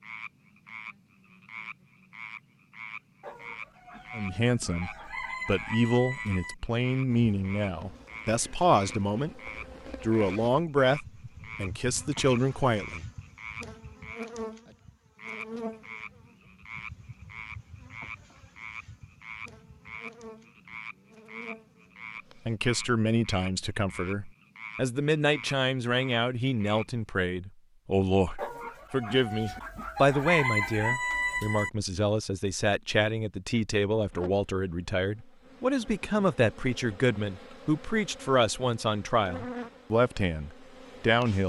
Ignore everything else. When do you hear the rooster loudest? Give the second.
30 s.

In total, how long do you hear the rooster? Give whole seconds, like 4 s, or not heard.
7 s.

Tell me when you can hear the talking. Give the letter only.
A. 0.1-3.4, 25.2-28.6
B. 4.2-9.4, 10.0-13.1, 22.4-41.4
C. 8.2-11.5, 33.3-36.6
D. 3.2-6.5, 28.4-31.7
B.